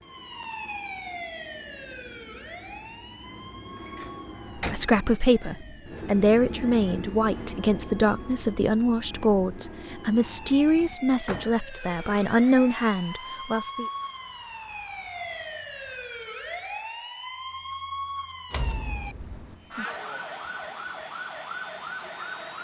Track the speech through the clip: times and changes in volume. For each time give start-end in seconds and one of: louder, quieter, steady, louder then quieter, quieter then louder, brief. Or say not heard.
4.7-13.8 steady.